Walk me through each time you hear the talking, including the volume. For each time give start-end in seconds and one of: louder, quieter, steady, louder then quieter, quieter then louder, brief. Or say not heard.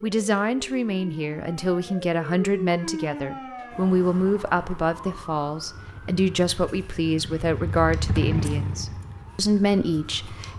0.0-10.5 steady.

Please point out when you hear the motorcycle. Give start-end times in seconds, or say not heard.
5.7-10.5.